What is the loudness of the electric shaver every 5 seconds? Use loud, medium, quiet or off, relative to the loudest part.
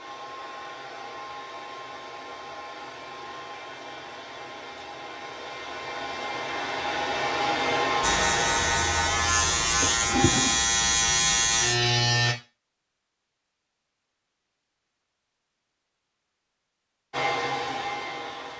off, loud, loud, off.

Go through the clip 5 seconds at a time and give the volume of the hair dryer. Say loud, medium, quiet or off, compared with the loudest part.
medium, loud, off, loud.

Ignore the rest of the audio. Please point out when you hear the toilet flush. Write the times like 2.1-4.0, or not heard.
9.8-10.6.